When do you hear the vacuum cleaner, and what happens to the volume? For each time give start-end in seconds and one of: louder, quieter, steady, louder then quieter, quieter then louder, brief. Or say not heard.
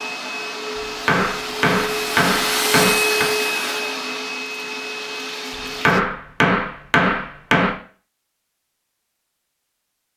0.0-6.0 louder then quieter.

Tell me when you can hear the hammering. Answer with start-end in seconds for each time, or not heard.
0.8-3.3, 5.8-7.8.